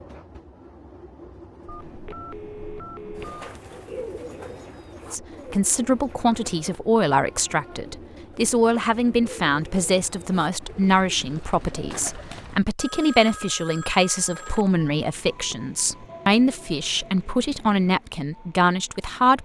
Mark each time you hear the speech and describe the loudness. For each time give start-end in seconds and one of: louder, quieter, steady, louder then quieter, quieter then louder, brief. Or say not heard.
5.1-19.4 steady.